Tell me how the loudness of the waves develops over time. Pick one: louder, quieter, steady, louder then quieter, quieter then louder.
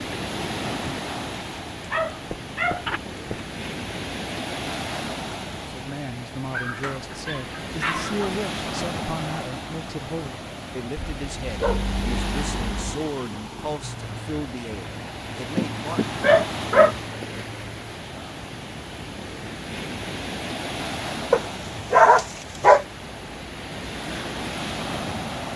steady.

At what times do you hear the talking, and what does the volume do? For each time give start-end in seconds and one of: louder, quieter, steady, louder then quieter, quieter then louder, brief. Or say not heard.
5.6-16.1 steady.